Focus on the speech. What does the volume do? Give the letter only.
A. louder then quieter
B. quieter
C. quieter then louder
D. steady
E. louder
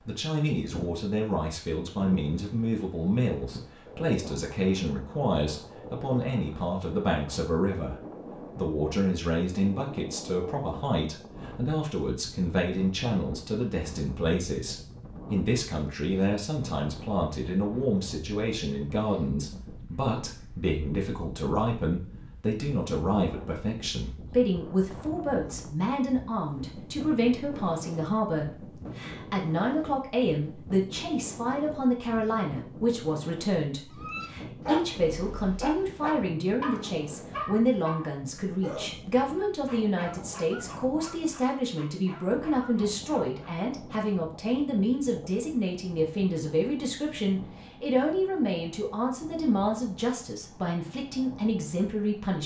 D.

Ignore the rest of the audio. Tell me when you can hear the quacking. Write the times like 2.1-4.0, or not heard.
not heard.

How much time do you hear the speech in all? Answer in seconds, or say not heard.
52 s.